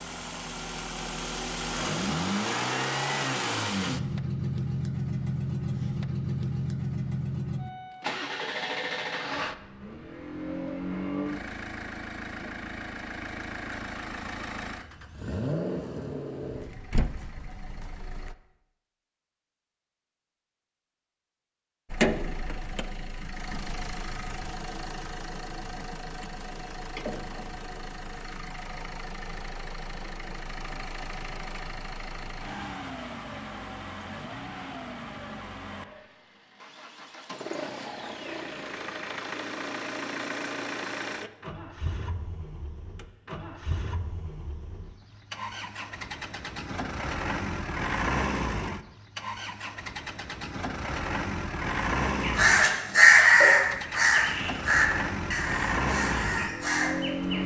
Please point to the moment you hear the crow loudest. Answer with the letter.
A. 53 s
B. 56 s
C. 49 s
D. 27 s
A.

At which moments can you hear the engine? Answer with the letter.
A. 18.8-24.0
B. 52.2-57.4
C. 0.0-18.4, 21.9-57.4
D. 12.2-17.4
C.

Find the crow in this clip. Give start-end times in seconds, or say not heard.
52.2-57.4.